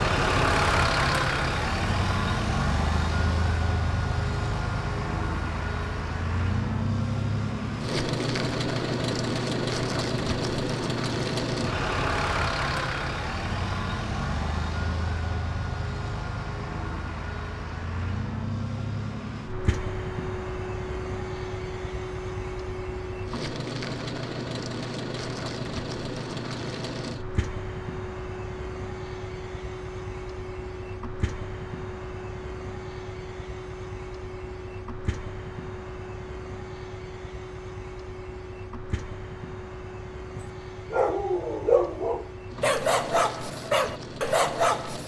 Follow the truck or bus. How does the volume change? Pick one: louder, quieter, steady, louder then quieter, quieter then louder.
quieter.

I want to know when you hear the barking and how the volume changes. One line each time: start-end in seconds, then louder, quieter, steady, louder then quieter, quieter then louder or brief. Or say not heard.
40.4-45.0 steady.